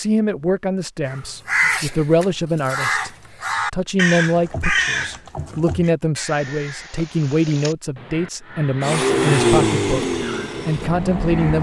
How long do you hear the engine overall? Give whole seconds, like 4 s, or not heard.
3 s.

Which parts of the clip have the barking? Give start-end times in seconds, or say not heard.
not heard.